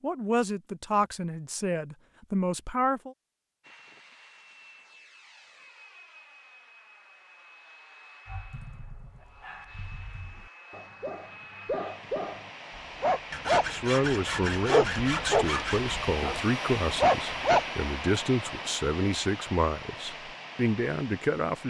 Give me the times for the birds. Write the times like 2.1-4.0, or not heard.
not heard.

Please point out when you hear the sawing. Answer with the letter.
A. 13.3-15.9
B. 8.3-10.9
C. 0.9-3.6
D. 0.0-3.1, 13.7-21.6
A.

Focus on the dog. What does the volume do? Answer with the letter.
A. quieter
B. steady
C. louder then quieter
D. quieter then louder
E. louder
E.